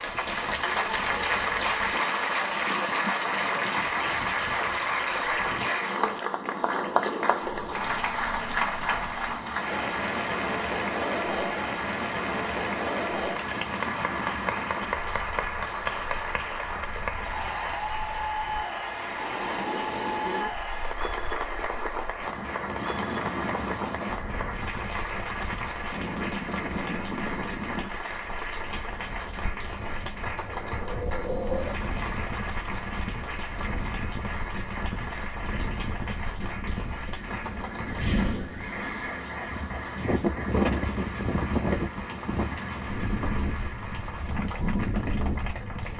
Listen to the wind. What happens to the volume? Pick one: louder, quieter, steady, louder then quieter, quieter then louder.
louder.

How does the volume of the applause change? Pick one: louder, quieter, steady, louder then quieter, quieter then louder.
quieter.